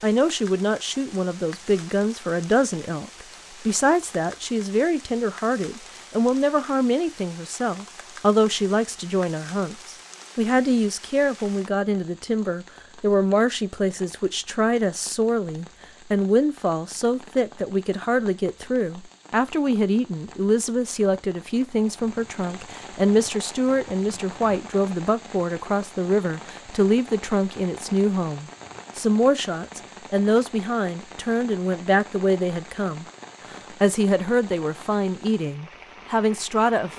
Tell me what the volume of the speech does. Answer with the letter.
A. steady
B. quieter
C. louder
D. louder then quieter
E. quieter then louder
A.